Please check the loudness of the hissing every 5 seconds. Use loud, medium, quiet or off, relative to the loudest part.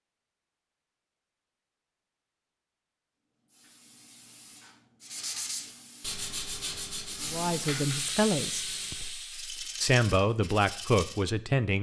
quiet, loud, off.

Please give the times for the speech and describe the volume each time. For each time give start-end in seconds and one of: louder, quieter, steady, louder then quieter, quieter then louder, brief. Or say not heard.
7.2-11.7 quieter then louder.